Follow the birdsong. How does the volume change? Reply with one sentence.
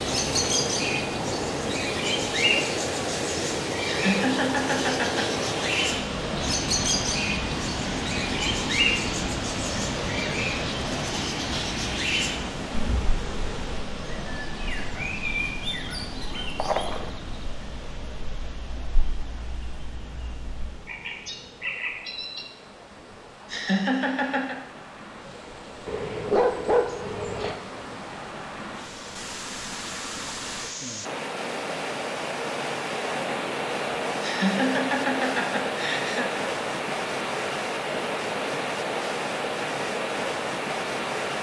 The loudness of the birdsong goes down.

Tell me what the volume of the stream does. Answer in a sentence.
The loudness of the stream goes down, then up.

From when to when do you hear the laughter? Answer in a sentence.
You can hear the laughter from 3.9 to 5.2 s, from 23.5 to 24.6 s and from 34.2 to 36.3 s.